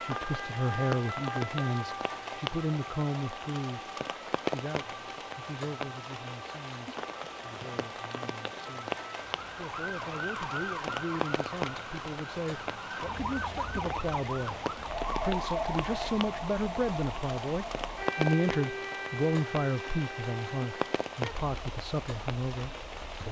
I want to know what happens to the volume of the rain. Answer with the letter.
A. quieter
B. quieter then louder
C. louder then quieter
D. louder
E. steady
E.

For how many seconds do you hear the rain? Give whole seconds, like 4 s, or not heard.
23 s.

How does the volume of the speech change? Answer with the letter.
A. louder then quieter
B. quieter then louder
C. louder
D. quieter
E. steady
B.